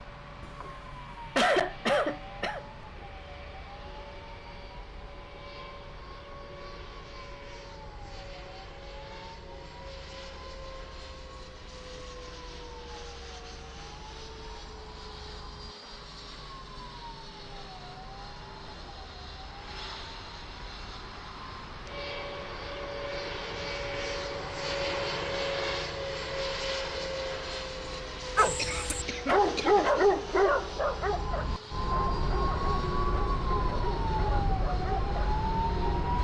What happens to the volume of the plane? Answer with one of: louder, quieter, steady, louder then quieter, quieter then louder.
louder then quieter.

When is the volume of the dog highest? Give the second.
30 s.